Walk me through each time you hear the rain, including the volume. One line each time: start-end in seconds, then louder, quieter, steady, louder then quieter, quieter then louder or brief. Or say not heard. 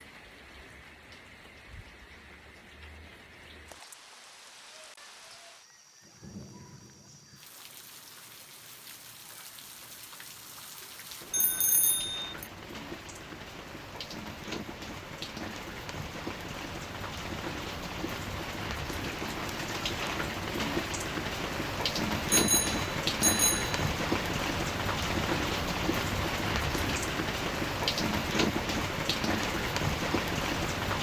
0.0-30.9 louder.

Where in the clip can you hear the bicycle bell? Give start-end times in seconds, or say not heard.
11.3-12.4, 22.3-23.8.